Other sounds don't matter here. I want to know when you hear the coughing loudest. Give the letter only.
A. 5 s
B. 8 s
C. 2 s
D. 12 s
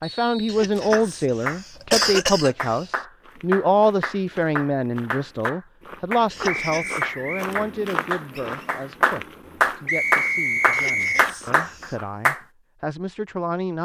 C.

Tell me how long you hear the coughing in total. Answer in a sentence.
The coughing can be heard for 4 seconds in total.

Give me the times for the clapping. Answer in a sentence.
You can hear the clapping from 0.9 to 12.4 s.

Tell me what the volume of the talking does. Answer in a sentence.
The volume of the talking goes down.